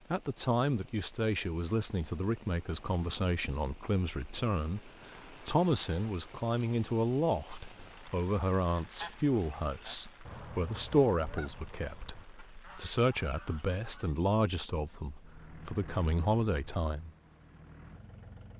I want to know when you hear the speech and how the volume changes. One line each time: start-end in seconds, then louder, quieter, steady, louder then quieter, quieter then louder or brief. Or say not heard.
0.1-17.1 steady.